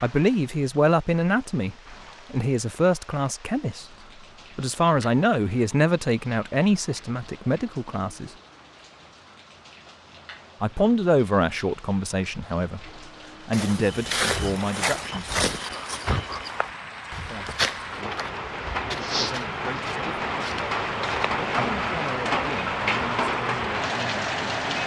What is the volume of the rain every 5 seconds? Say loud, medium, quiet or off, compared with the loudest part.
quiet, quiet, quiet, medium, loud.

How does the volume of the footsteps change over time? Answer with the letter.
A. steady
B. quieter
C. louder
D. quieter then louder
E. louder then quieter
B.